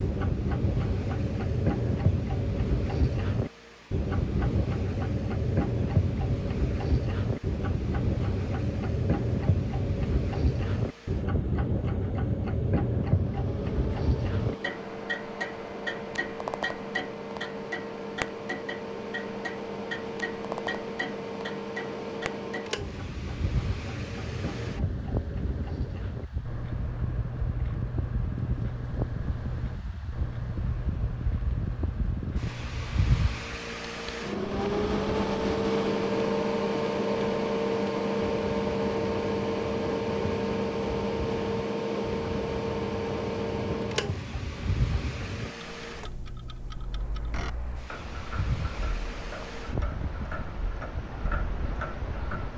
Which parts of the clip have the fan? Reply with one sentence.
The fan can be heard from 0.0 to 52.5 s.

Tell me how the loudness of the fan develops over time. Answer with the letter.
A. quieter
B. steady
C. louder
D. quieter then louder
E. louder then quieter
E.